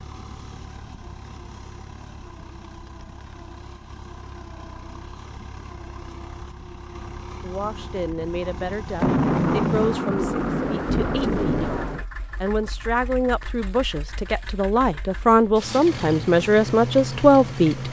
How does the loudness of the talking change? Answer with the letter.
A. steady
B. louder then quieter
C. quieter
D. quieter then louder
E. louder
E.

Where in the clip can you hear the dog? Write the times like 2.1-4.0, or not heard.
not heard.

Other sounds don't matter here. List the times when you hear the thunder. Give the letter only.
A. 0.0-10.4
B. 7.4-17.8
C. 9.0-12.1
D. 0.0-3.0
C.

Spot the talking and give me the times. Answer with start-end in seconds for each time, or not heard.
7.4-17.8.